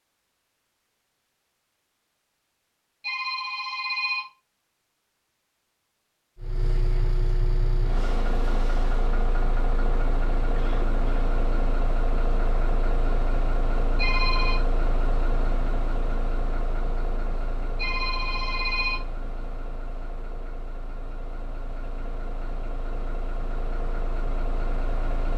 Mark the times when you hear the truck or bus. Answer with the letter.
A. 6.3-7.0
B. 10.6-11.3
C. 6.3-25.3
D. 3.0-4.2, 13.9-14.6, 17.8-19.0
C.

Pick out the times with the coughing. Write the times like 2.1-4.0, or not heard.
10.6-11.3.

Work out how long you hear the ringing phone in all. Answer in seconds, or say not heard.
3 s.